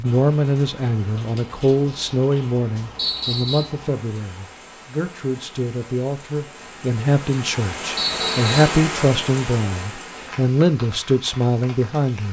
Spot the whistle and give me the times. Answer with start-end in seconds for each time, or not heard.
3.0-3.6, 8.0-8.7.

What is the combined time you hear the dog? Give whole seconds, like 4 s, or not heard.
not heard.